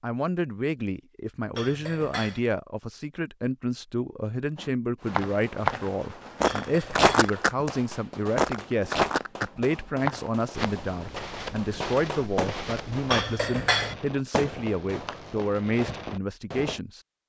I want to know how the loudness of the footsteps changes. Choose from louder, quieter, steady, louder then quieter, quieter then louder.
quieter.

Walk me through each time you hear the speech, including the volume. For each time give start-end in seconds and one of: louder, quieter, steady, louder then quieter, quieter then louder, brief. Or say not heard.
0.0-17.0 steady.